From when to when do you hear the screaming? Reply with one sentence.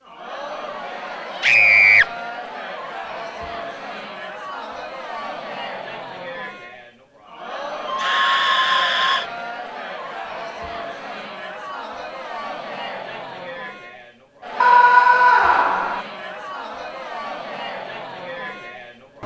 You can hear the screaming from 1.4 to 2.0 s, from 7.8 to 9.2 s and from 14.6 to 16.0 s.